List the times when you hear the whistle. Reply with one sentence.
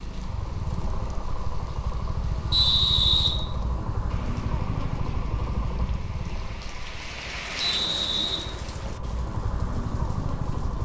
You can hear the whistle from 2.5 to 3.3 s and from 7.6 to 9.1 s.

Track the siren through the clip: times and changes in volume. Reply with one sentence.
You can't hear the siren here.